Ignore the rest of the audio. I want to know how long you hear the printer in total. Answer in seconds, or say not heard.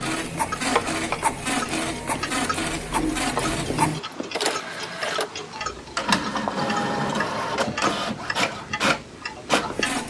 10 s.